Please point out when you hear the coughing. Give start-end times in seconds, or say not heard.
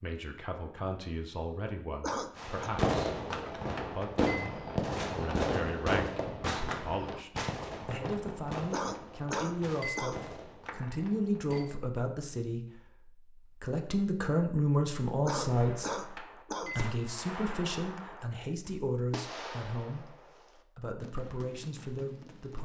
2.0-2.7, 8.7-10.2, 15.2-16.8.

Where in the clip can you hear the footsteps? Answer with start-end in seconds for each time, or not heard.
not heard.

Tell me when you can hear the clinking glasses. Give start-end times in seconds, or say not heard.
3.8-4.5, 9.3-11.8, 16.1-16.9.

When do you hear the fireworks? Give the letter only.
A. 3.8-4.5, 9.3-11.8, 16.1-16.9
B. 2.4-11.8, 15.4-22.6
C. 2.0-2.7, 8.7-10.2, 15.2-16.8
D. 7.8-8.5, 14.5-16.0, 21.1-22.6
B.